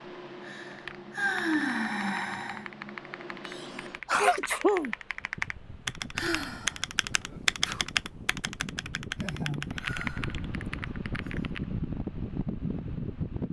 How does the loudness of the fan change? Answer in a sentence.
The loudness of the fan goes up.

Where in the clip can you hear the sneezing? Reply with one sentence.
The sneezing can be heard from 3.5 to 5.0 s and from 7.0 to 7.8 s.